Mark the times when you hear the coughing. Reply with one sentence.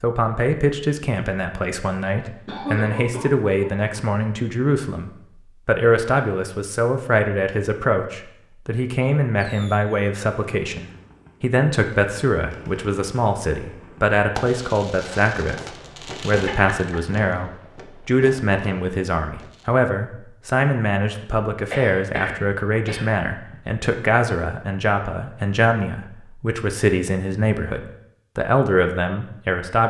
The coughing can be heard from 2.2 to 4.0 s, from 16.4 to 17.0 s and from 21.7 to 23.6 s.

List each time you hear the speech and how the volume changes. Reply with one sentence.
The speech can be heard from 0.0 to 29.8 s, at a steady volume.